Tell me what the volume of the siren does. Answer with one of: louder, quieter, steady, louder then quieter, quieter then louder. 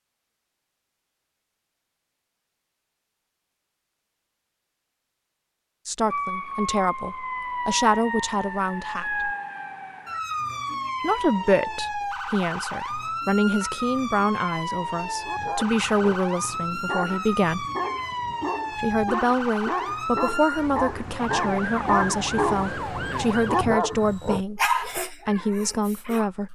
steady.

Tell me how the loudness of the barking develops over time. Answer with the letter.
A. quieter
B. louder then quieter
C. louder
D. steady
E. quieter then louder
C.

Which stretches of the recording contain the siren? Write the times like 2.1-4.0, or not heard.
6.1-23.7.